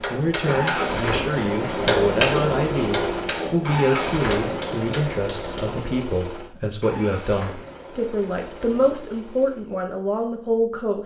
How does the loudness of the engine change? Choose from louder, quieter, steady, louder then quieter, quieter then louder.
quieter.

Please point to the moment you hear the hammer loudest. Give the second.
2 s.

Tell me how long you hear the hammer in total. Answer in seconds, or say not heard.
6 s.